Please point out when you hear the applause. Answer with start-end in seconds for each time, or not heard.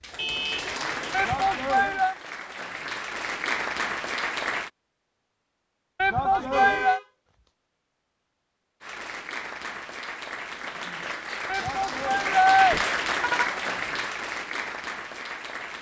0.0-4.7, 8.8-15.7.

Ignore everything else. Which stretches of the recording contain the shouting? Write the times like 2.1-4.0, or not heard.
1.1-2.1, 6.0-7.0, 11.4-12.8.